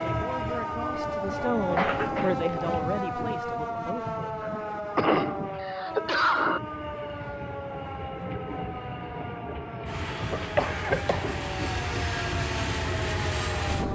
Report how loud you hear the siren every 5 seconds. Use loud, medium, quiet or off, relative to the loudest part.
loud, medium, medium.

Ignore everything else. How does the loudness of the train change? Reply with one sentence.
The loudness of the train goes down, then up.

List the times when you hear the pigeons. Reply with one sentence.
You can't hear the pigeons here.